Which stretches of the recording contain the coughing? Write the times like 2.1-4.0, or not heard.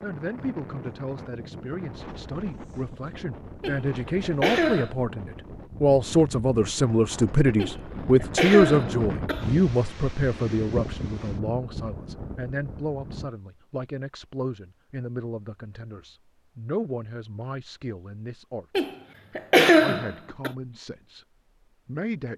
3.6-4.9, 7.5-9.5, 18.8-20.5.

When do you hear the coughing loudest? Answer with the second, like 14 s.
20 s.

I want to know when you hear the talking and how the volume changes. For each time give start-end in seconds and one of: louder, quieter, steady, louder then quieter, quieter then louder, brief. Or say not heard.
0.0-18.9 louder then quieter
19.8-21.2 brief
21.9-22.3 brief.